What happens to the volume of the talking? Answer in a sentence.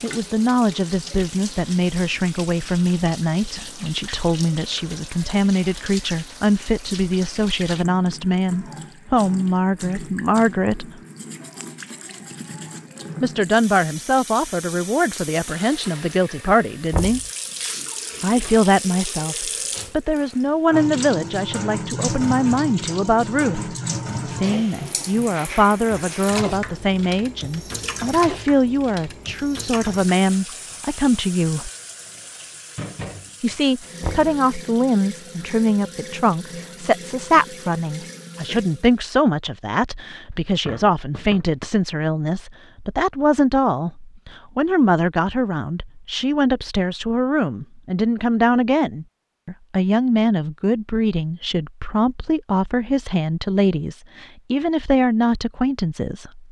The volume of the talking stays about the same.